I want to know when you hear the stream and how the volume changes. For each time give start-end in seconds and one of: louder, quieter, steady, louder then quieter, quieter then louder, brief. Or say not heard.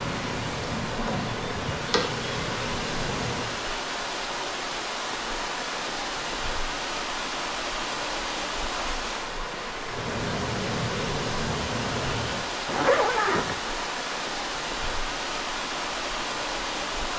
0.0-17.1 steady.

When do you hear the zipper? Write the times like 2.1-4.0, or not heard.
12.7-13.6.